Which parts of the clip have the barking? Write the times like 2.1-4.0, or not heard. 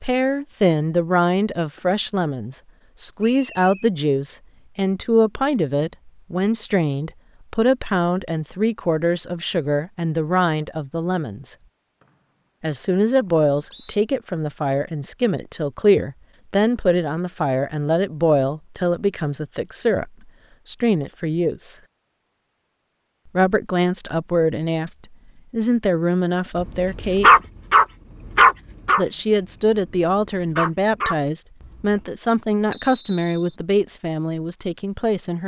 26.6-32.0.